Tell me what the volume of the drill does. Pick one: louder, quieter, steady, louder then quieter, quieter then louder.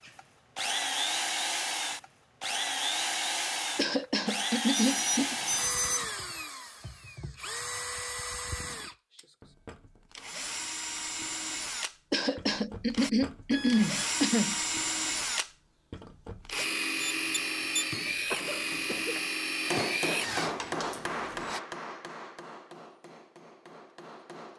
quieter then louder.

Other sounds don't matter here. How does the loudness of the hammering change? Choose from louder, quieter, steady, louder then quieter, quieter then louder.
quieter.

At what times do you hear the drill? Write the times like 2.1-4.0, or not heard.
0.0-21.6.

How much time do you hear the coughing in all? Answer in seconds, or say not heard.
5 s.